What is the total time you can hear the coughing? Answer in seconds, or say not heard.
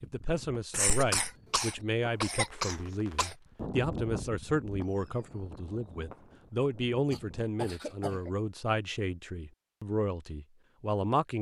4 s.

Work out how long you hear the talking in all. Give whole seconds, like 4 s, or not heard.
11 s.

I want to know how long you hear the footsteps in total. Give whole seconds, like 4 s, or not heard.
not heard.